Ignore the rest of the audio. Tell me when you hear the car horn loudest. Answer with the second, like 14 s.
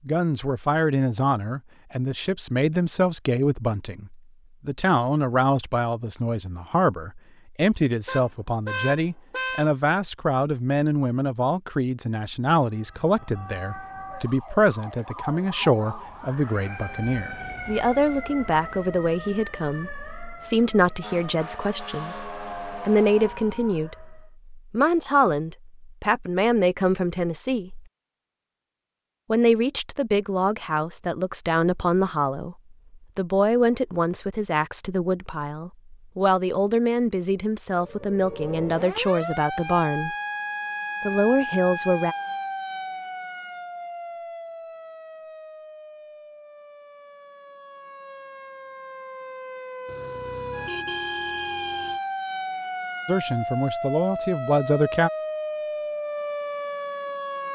9 s.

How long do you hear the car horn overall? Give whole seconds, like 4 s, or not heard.
4 s.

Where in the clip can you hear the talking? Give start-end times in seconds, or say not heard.
0.1-27.9, 29.3-40.1, 41.0-42.1, 53.0-55.1.